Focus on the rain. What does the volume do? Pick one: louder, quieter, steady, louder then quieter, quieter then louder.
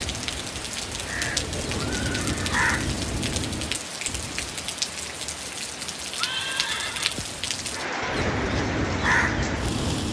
steady.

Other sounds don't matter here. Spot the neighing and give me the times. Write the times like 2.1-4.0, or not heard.
1.7-2.6, 6.2-7.2.